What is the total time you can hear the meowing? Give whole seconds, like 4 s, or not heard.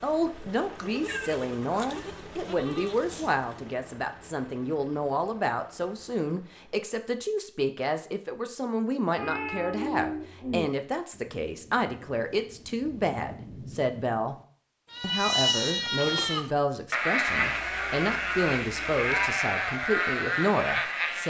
5 s.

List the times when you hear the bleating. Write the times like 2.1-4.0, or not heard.
0.0-3.8, 14.9-21.2.